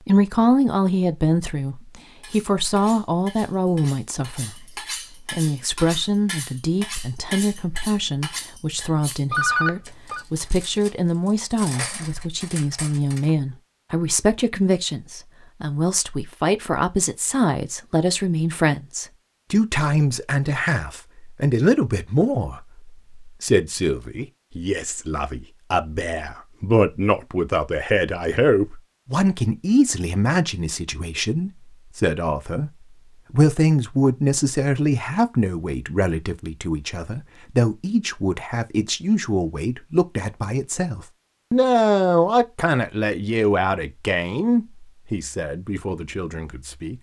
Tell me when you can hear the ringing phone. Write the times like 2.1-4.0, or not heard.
9.3-10.2.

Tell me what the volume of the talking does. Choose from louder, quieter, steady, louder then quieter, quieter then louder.
steady.